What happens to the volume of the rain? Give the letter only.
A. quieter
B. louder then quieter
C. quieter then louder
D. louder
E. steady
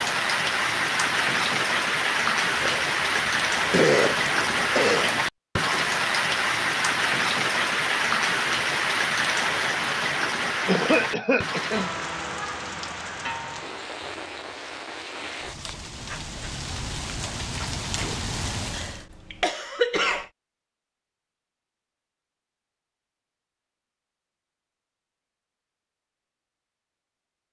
A.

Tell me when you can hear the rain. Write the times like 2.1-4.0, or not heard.
0.0-19.1.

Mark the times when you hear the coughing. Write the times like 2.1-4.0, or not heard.
2.5-5.1, 10.7-11.9, 18.7-20.2.